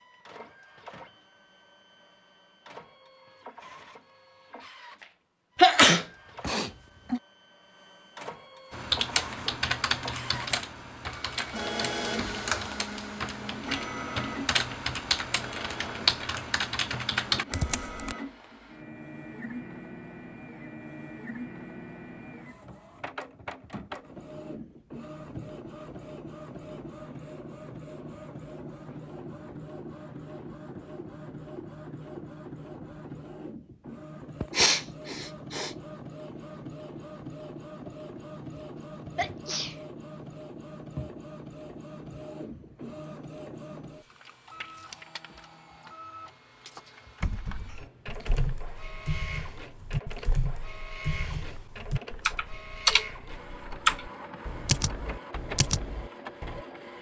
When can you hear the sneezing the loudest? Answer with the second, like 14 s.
6 s.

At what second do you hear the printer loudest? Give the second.
12 s.